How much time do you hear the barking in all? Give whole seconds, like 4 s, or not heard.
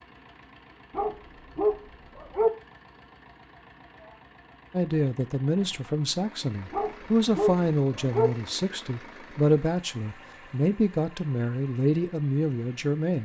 3 s.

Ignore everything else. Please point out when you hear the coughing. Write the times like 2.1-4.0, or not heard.
not heard.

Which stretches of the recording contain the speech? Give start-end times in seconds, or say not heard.
4.7-13.1.